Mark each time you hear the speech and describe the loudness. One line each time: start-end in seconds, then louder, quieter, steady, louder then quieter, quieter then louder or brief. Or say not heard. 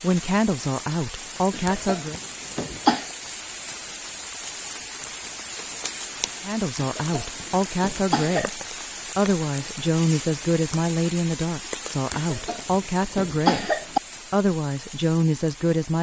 0.0-2.2 brief
6.5-15.9 steady.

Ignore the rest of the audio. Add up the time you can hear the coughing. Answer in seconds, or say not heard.
5 s.